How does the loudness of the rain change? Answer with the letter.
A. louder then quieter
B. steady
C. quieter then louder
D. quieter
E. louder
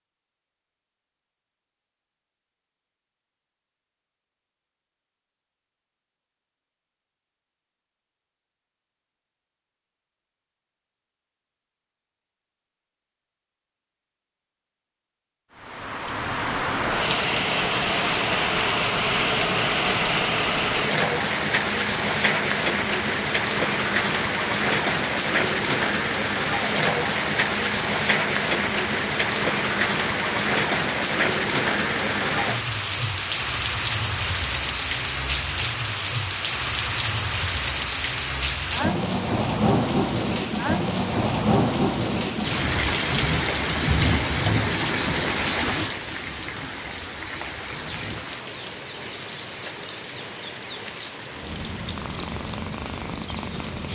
D.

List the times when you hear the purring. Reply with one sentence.
You can hear the purring from 51.3 to 53.9 s.